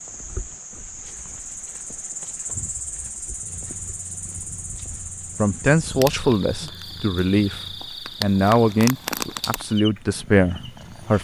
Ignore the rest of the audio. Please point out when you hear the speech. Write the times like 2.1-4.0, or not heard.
5.3-11.1.